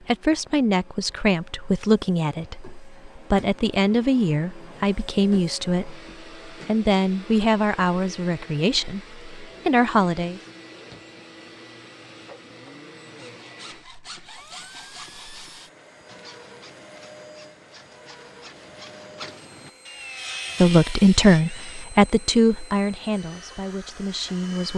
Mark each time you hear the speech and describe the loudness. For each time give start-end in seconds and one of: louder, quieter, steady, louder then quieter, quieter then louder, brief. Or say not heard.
0.1-10.4 steady
20.6-24.7 quieter.